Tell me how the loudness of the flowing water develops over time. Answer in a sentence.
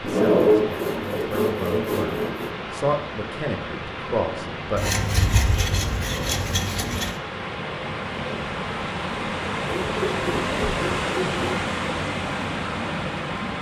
The volume of the flowing water goes up.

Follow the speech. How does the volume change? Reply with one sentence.
The volume of the speech goes up.